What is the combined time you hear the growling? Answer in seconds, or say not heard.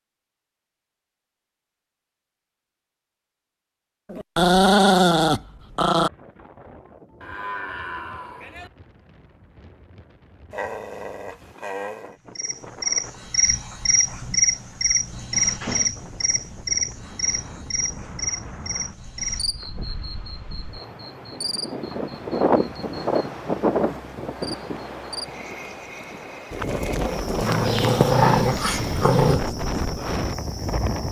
6 s.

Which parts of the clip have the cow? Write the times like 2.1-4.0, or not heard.
7.2-8.7.